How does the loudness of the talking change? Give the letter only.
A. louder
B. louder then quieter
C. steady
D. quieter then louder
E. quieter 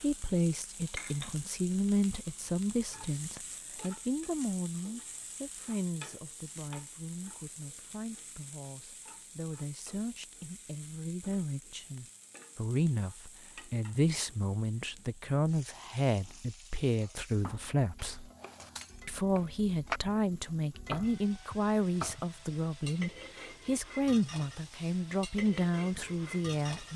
D.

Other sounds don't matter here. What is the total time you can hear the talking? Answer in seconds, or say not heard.
26 s.